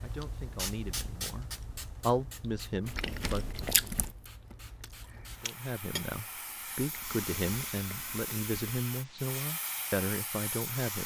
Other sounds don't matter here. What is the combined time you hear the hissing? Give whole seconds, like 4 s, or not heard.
11 s.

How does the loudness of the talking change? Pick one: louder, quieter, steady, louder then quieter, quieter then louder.
louder.